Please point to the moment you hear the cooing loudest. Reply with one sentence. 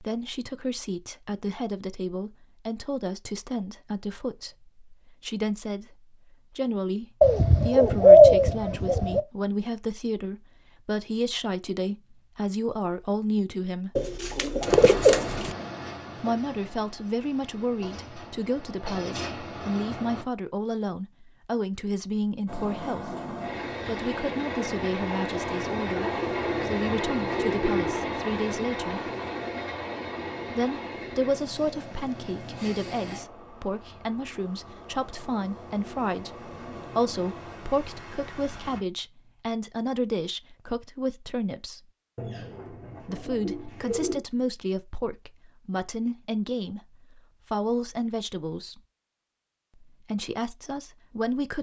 The volume of the cooing peaks at 8 seconds.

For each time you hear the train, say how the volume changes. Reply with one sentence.
You can hear the train from 14.7 to 20.2 s, getting quieter then louder; and from 22.4 to 38.9 s, getting quieter.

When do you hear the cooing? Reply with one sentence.
The cooing can be heard from 7.2 to 9.2 s, from 13.9 to 15.5 s, from 25.9 to 28.1 s and from 42.1 to 44.2 s.